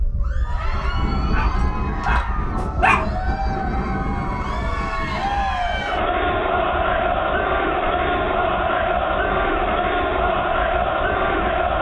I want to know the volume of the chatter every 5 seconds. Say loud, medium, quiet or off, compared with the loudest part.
medium, loud, loud.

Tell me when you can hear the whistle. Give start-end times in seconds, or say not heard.
not heard.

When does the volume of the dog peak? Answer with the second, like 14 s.
3 s.